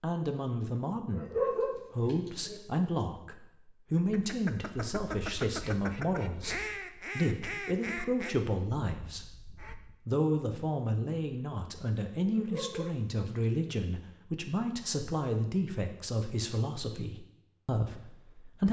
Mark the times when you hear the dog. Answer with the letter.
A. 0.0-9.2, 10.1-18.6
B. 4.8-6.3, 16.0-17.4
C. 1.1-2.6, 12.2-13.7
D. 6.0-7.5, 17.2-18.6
C.